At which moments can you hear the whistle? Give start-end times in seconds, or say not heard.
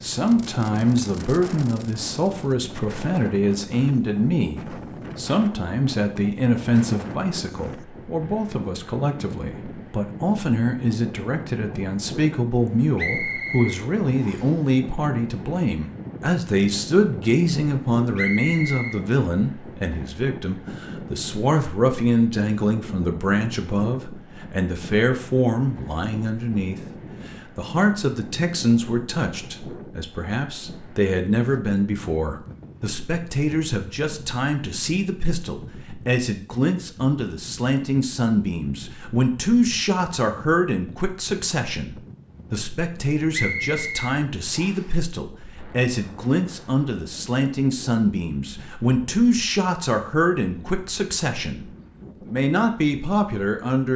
12.9-14.6, 18.1-19.0, 43.3-44.9.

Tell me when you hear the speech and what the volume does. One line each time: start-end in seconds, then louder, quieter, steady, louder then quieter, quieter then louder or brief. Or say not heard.
0.0-51.6 steady
52.2-53.9 brief.